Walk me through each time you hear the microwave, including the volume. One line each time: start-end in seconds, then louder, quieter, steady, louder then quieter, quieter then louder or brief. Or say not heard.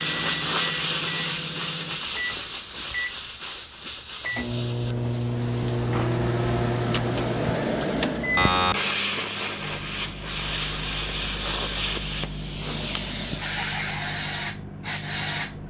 0.0-15.6 louder then quieter.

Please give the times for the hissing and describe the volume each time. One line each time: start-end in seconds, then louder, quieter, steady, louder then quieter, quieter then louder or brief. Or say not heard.
0.0-15.6 quieter then louder.